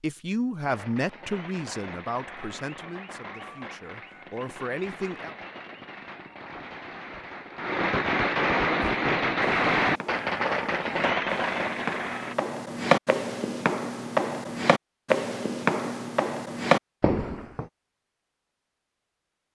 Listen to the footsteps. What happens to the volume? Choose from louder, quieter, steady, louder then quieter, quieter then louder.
louder.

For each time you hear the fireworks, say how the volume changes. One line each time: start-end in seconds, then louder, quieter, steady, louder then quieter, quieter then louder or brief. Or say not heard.
0.6-12.3 louder.